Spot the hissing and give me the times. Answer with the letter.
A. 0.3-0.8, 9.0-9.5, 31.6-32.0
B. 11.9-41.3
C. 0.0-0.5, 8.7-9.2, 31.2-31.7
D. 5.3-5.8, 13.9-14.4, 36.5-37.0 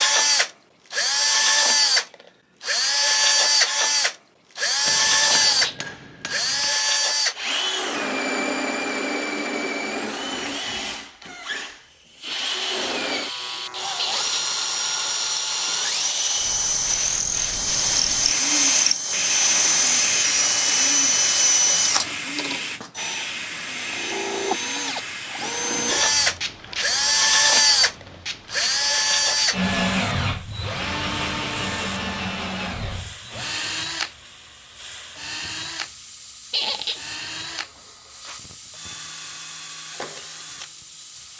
B.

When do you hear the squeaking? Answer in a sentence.
The squeaking can be heard from 5.3 to 5.8 s, from 13.9 to 14.4 s and from 36.5 to 37.0 s.